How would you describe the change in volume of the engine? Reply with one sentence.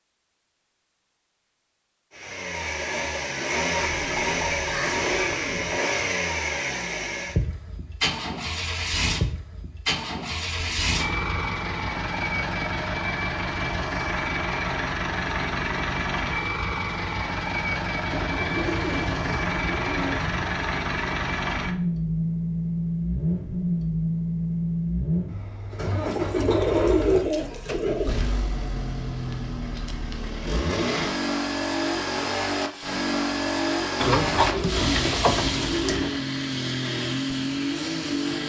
The volume of the engine stays about the same.